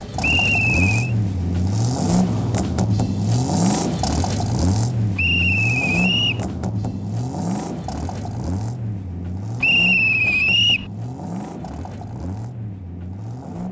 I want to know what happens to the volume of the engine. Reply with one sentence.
The volume of the engine goes down.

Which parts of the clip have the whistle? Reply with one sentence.
You can hear the whistle from 0.2 to 1.1 s, from 5.2 to 6.5 s and from 9.6 to 10.9 s.